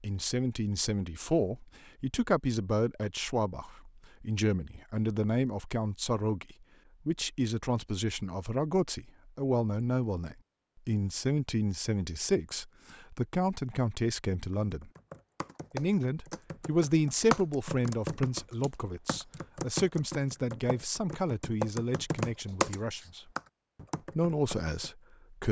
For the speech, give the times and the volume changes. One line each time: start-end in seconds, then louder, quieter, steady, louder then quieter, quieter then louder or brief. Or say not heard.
0.0-14.9 steady
15.7-23.2 quieter
24.1-25.4 brief.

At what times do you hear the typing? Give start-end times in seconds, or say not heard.
14.5-24.9.